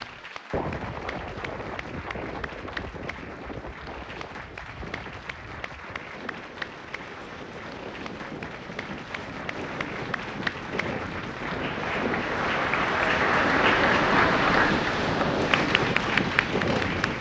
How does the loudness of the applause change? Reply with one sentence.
The loudness of the applause goes up.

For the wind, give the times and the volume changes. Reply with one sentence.
The wind can be heard from 0.0 to 17.1 s, getting quieter then louder.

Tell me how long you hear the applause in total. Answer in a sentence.
The applause can be heard for 17 seconds in total.